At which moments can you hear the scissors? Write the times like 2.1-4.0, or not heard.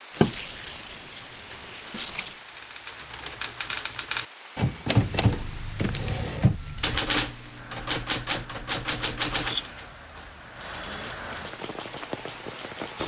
0.2-2.2, 5.2-7.0, 9.3-9.8.